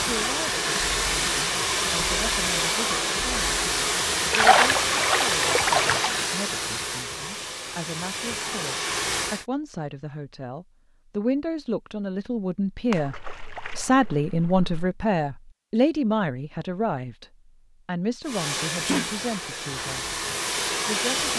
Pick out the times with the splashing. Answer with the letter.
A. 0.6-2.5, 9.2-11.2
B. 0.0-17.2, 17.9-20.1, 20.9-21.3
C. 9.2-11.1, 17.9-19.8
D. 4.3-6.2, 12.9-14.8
D.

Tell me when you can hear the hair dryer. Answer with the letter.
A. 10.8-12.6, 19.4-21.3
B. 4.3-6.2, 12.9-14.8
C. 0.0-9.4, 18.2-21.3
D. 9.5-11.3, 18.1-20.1
C.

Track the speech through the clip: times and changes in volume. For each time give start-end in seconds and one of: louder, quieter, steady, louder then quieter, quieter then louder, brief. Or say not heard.
0.0-17.2 louder
17.9-20.1 brief
20.9-21.3 brief.